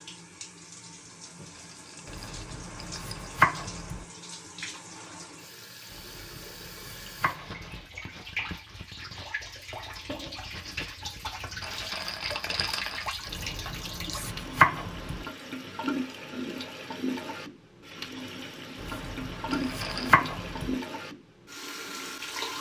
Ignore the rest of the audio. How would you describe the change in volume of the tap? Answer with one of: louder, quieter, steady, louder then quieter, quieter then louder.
louder.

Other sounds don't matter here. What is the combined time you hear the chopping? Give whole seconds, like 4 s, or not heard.
8 s.